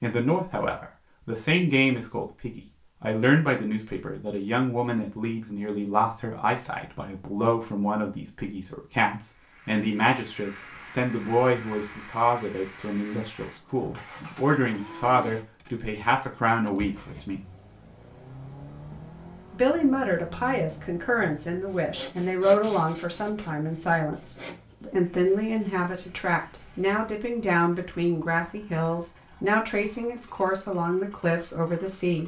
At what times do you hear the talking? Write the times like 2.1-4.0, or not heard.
0.0-17.4, 19.5-32.2.